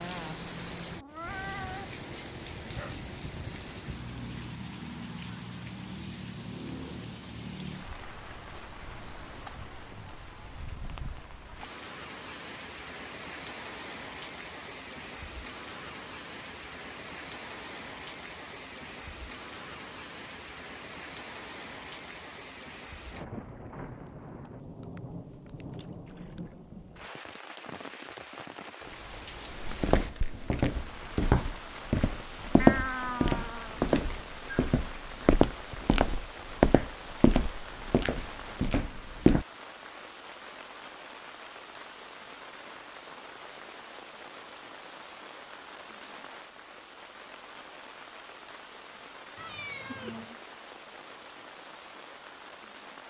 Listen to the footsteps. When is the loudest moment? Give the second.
33 s.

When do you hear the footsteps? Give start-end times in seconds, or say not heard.
29.5-39.5.